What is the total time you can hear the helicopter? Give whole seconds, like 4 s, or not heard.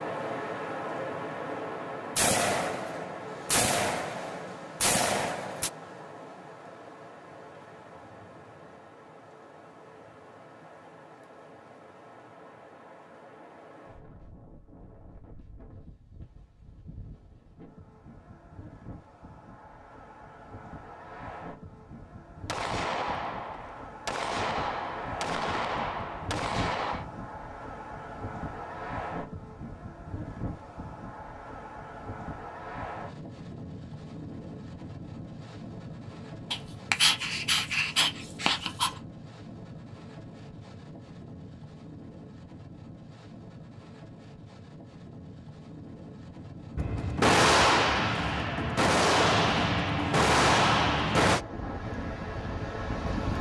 not heard.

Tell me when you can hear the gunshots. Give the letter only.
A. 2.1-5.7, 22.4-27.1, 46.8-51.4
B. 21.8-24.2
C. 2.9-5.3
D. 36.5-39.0
A.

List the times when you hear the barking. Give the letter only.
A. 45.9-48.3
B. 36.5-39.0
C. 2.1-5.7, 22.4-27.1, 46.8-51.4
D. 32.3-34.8
B.